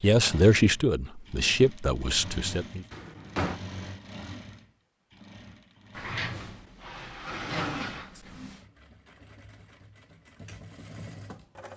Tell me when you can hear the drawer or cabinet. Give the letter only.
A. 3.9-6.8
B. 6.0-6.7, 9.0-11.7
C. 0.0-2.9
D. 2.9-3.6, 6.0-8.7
D.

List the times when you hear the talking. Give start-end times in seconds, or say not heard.
0.0-2.9.